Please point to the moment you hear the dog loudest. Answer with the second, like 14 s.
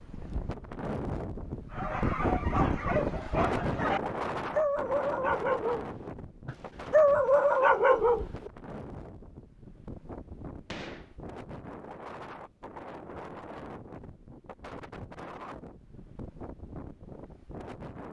7 s.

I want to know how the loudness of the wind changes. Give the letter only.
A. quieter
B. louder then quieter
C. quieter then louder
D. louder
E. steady
A.